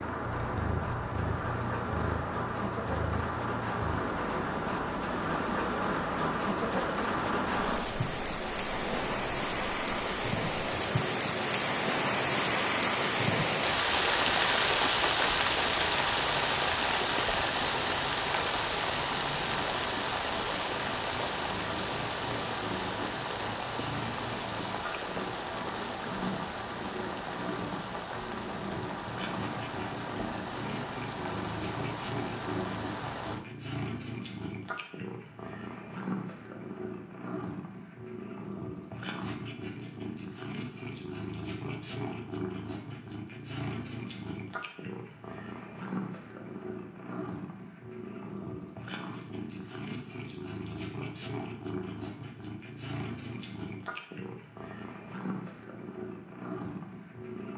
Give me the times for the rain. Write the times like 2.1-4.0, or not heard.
0.0-33.5.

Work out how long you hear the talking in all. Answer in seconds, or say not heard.
not heard.